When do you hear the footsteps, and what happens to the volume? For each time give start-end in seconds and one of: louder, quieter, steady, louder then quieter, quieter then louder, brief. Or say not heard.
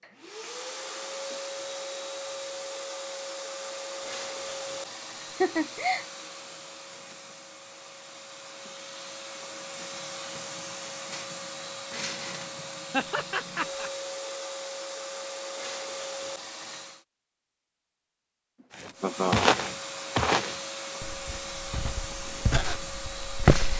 18.8-23.7 quieter then louder.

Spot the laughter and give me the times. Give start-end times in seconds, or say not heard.
4.0-6.0, 12.9-13.9, 19.0-19.4.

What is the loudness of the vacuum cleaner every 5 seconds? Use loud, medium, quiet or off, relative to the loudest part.
loud, medium, loud, loud, loud.